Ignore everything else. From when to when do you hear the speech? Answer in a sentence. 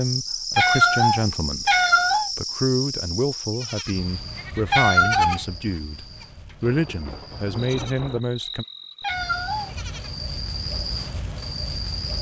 You can hear the speech from 0.0 to 1.8 s and from 2.4 to 8.7 s.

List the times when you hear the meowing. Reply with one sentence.
The meowing can be heard from 0.6 to 2.3 s, from 4.7 to 5.4 s and from 9.0 to 9.8 s.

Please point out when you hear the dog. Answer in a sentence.
You can't hear the dog here.